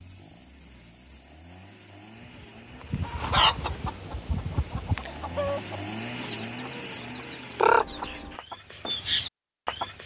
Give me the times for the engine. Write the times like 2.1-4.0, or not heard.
0.0-8.4.